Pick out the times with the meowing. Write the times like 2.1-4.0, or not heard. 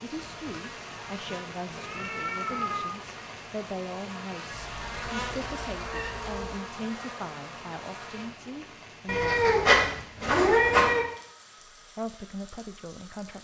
1.8-2.9, 4.5-6.5, 9.1-11.0.